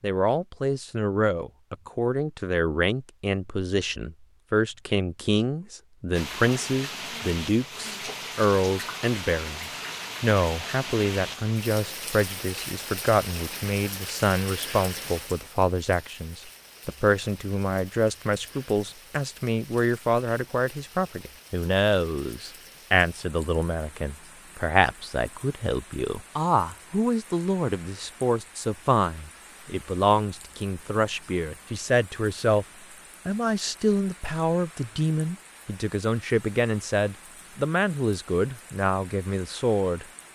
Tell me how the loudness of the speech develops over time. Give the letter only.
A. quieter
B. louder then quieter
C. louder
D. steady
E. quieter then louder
D.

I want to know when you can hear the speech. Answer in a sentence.
The speech can be heard from 0.0 to 32.6 s and from 33.2 to 40.0 s.